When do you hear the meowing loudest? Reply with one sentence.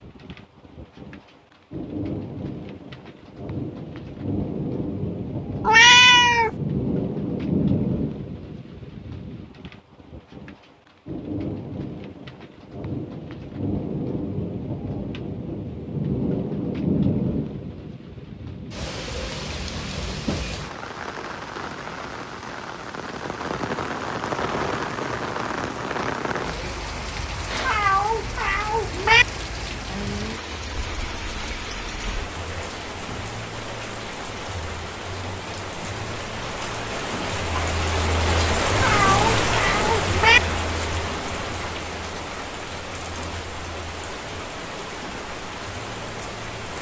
The volume of the meowing peaks at 6 seconds.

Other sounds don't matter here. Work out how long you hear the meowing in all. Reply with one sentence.
You can hear the meowing for 4 seconds altogether.